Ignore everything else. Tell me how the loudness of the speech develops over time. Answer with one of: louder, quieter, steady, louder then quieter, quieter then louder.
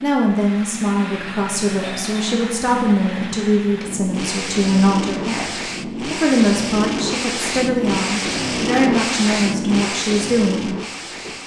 steady.